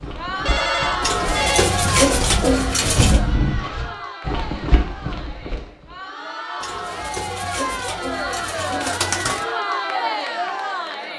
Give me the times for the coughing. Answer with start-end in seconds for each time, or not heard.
not heard.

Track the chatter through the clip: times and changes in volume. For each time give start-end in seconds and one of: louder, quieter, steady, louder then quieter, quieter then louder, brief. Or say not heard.
0.0-11.1 quieter then louder.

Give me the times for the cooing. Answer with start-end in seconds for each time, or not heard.
1.0-3.2, 6.6-9.4.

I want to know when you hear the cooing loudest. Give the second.
2 s.